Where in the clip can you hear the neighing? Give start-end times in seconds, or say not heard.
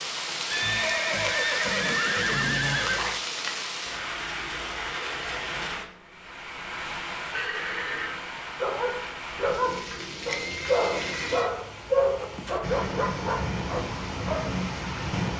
0.5-3.2, 7.3-8.2, 10.4-11.5.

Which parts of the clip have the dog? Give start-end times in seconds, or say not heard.
8.6-14.5.